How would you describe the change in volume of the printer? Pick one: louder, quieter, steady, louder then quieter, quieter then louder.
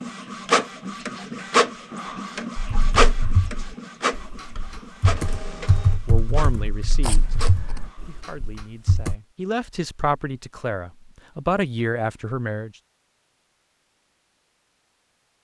quieter.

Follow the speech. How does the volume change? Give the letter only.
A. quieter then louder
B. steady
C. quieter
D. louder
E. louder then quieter
A.